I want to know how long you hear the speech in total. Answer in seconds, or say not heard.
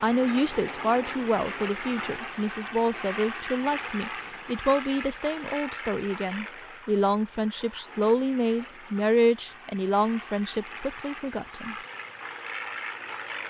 12 s.